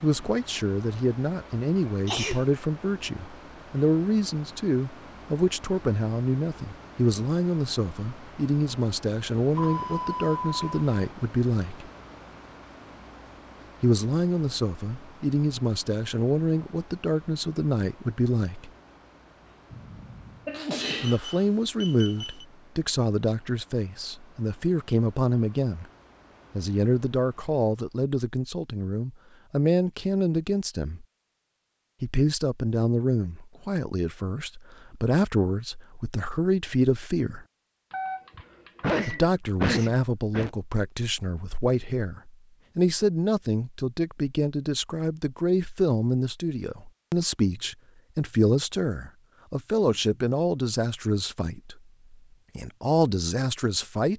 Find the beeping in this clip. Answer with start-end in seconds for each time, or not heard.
9.6-10.8, 20.9-22.4, 37.9-39.3.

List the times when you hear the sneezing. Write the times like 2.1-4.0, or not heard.
2.0-2.5, 19.7-21.1, 38.4-40.5.